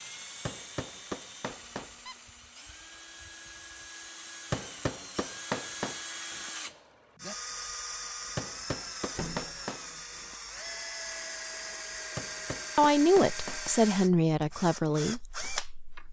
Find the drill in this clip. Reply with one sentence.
You can hear the drill from 0.0 to 16.0 s.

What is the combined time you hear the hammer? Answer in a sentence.
You can hear the hammer for 7 seconds altogether.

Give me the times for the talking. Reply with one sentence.
The talking can be heard from 12.8 to 16.0 s.